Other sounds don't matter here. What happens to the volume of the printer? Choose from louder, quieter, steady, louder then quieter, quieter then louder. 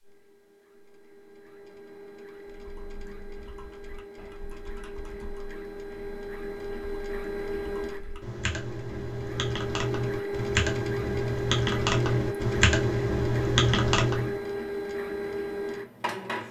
louder.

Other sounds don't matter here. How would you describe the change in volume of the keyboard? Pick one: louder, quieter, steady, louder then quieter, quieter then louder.
louder.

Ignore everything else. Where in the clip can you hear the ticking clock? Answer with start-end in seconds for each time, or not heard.
not heard.